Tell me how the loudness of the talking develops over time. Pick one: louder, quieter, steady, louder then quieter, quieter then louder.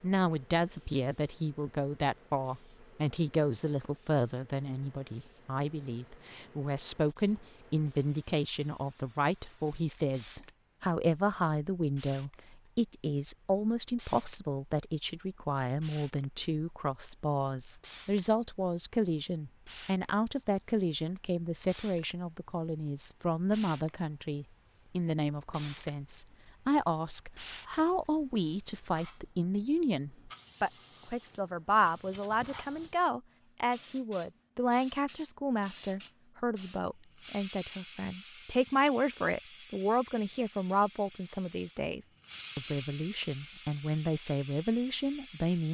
steady.